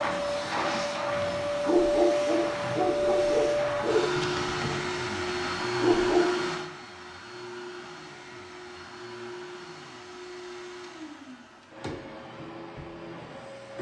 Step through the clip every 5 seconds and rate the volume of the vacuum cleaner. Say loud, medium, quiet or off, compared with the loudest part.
loud, medium, quiet.